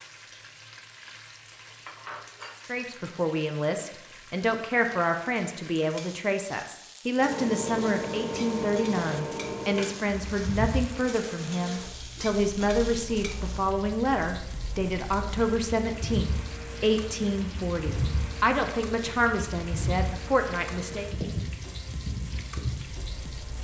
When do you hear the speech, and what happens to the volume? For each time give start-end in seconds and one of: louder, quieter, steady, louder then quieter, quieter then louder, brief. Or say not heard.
2.6-21.1 steady.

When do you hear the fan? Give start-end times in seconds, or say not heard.
7.2-23.5.